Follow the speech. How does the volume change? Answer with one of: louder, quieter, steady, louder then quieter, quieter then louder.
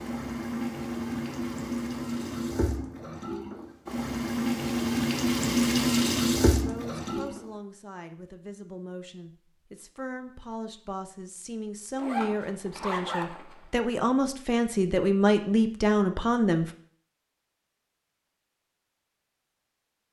louder.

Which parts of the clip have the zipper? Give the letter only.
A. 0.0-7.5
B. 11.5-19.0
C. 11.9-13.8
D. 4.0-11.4
C.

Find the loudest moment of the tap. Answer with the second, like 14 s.
6 s.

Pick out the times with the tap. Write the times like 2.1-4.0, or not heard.
0.0-7.5.